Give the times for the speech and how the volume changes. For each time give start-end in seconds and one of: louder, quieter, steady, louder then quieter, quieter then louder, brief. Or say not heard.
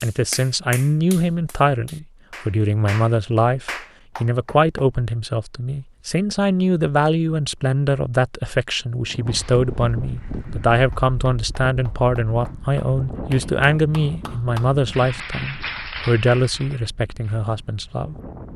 0.0-18.1 steady.